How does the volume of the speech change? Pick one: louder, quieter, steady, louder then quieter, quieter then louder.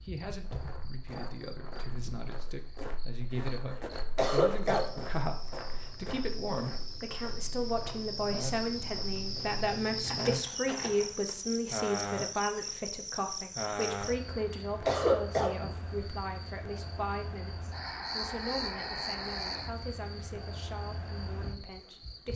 louder then quieter.